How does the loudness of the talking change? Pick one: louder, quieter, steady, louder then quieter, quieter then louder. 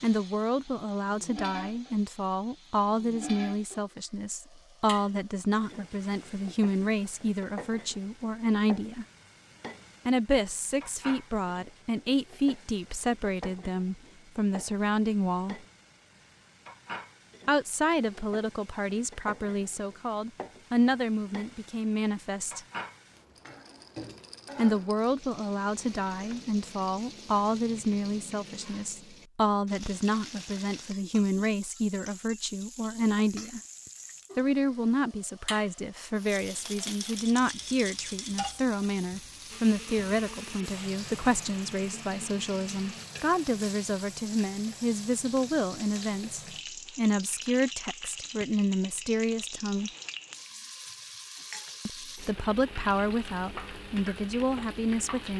steady.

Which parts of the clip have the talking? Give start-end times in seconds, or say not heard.
0.0-9.1, 10.1-15.6, 17.4-22.6, 24.6-33.6, 34.4-49.9, 51.9-55.3.